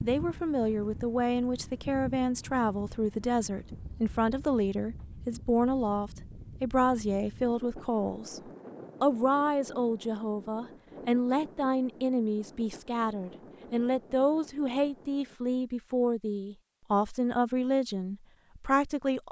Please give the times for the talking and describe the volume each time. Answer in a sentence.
You can hear the talking from 0.0 to 19.2 s, at a steady volume.